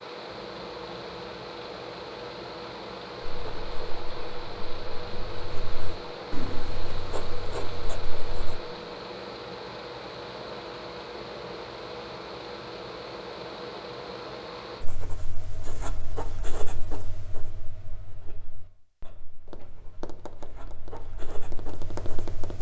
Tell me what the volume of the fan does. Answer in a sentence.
The loudness of the fan stays about the same.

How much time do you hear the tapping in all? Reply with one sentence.
You can hear the tapping for 3 seconds altogether.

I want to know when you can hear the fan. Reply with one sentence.
You can hear the fan from 0.0 to 14.8 s.